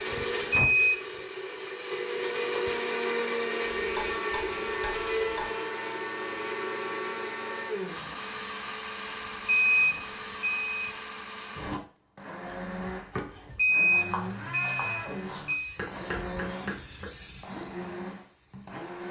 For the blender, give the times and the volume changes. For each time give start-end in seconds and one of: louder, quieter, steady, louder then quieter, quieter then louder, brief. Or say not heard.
0.0-19.0 quieter.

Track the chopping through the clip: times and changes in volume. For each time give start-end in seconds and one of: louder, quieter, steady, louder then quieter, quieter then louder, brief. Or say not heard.
3.8-5.5 brief
12.4-17.1 steady.